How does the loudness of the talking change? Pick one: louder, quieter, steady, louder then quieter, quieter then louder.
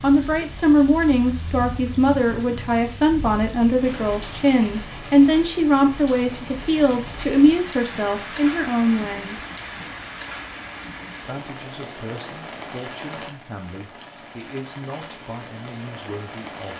quieter.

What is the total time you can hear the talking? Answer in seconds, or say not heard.
15 s.